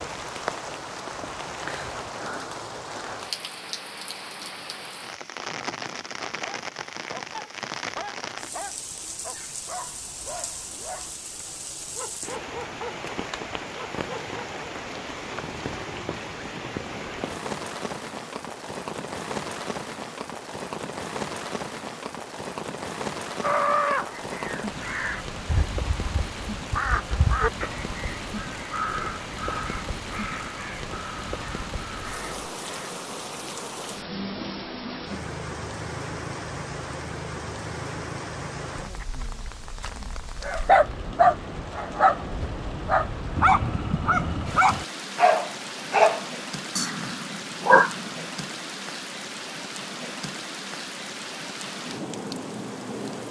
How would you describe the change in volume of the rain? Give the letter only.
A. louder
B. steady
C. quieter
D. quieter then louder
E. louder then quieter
B.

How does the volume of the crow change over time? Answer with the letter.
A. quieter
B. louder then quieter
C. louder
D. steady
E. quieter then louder
A.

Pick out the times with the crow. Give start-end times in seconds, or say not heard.
23.4-33.0.